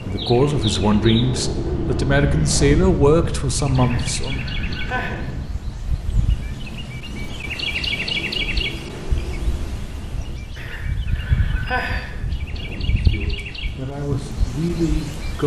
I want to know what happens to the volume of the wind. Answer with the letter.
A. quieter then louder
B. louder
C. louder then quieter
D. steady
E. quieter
E.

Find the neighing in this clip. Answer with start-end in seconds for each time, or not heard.
3.8-5.2, 10.6-12.1.